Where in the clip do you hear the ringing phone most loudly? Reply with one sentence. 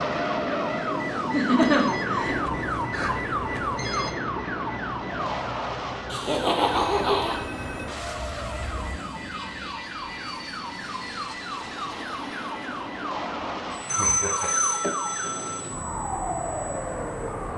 The volume of the ringing phone peaks at 14 seconds.